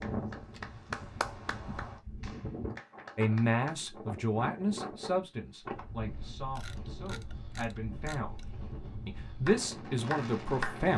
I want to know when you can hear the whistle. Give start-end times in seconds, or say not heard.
not heard.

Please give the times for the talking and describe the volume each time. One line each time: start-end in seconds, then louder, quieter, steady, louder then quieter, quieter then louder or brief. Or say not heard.
3.1-10.9 quieter then louder.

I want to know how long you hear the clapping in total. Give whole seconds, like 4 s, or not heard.
5 s.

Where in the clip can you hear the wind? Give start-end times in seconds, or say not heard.
0.0-10.9.